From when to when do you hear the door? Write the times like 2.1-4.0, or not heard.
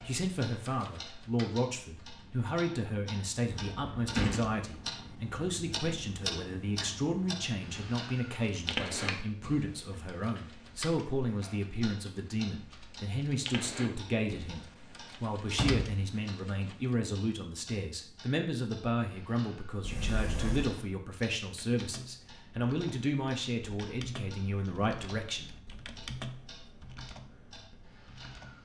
3.5-4.5, 15.5-16.0, 19.8-20.8.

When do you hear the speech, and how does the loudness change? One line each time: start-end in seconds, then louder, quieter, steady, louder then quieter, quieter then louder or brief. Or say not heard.
0.0-25.5 steady.